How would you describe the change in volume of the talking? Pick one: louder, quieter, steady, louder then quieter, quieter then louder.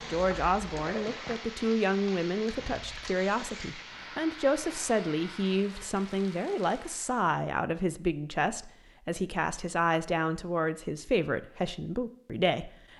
steady.